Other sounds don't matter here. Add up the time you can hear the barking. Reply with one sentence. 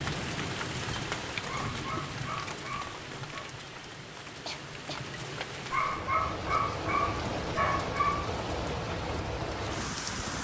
The barking can be heard for 5 seconds in total.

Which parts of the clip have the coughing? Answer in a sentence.
You can hear the coughing from 4.5 to 5.1 s.